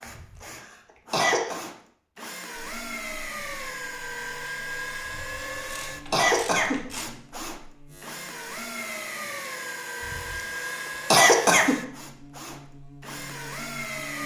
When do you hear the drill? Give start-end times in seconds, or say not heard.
0.0-14.2.